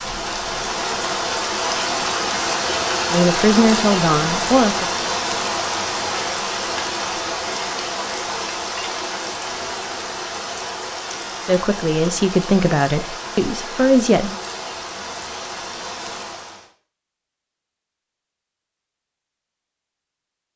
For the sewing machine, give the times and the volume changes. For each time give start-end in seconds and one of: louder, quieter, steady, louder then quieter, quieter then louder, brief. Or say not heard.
not heard.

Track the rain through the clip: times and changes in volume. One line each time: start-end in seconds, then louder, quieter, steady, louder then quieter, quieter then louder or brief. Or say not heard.
0.0-16.7 quieter.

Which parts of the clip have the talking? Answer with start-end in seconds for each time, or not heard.
3.1-4.8, 11.4-14.3.